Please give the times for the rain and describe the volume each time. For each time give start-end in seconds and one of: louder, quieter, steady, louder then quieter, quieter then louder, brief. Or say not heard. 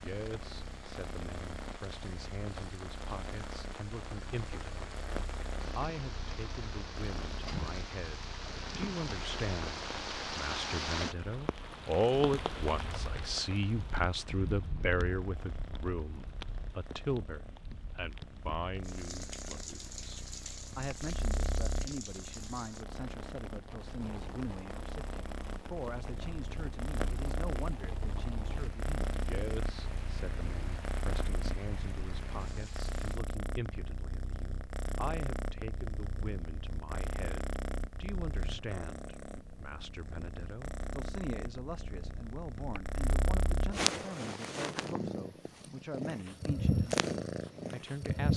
0.0-33.2 louder then quieter.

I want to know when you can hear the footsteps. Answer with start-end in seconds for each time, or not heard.
not heard.